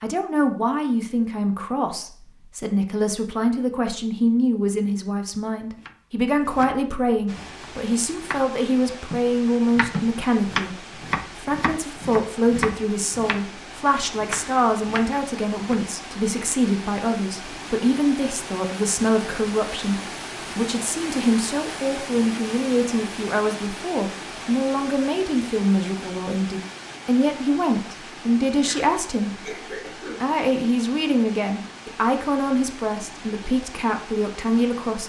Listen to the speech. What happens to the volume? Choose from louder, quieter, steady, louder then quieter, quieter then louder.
steady.